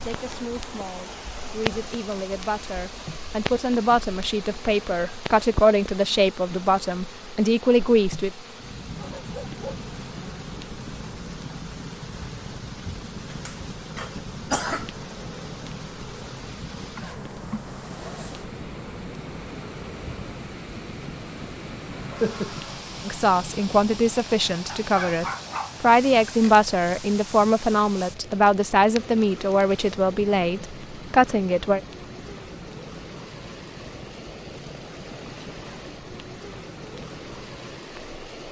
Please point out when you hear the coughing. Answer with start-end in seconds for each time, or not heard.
13.3-14.8, 21.9-22.8.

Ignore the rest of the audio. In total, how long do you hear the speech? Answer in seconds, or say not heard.
17 s.